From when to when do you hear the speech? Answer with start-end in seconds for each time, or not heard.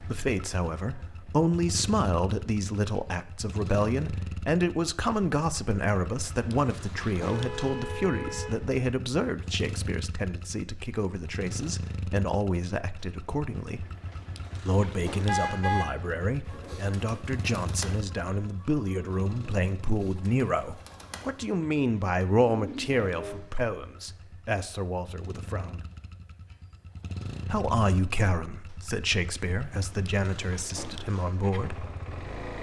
0.0-13.8, 14.7-25.8, 27.4-31.9.